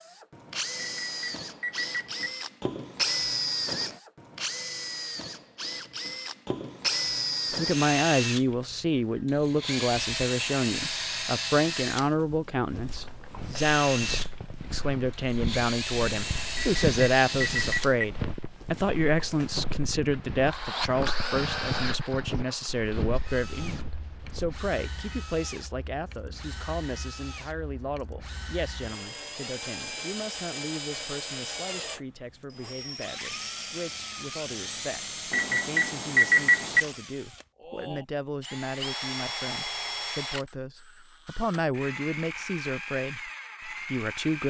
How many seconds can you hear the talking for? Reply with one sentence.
You can hear the talking for 37 seconds altogether.